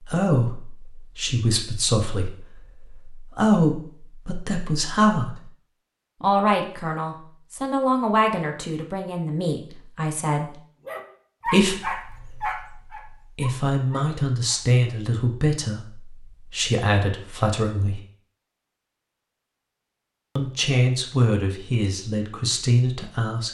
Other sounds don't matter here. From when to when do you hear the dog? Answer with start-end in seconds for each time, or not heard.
10.8-14.6.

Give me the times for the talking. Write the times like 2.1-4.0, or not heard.
0.0-5.5, 6.2-10.6, 11.4-18.0, 20.4-23.4.